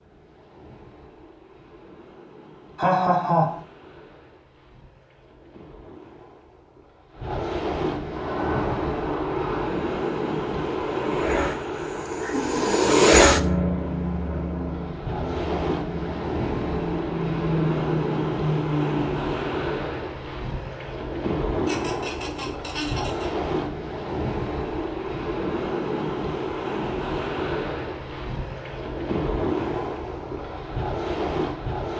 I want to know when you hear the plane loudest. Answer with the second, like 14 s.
13 s.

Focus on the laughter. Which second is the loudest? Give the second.
3 s.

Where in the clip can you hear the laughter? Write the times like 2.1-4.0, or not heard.
2.8-3.6, 12.1-12.8, 21.6-23.3.